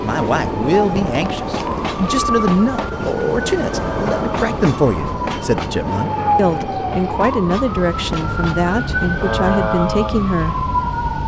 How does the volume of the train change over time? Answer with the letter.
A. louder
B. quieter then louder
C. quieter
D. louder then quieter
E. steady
C.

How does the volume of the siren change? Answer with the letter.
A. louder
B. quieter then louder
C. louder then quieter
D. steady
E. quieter
A.